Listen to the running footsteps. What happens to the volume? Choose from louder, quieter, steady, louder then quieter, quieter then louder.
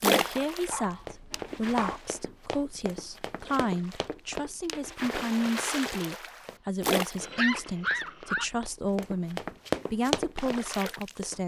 quieter then louder.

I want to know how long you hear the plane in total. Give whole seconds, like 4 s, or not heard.
not heard.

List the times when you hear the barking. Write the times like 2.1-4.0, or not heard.
0.7-2.0, 7.2-8.5.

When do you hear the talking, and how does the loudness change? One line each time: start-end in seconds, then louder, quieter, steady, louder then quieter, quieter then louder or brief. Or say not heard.
0.1-11.4 steady.